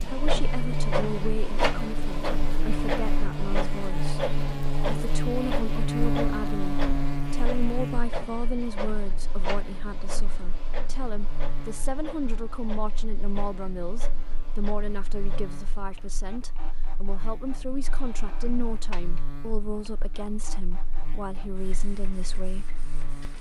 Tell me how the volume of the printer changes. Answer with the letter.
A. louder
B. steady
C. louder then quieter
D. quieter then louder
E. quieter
E.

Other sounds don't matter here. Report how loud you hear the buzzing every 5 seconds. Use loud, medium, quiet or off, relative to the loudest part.
loud, loud, quiet, quiet, quiet.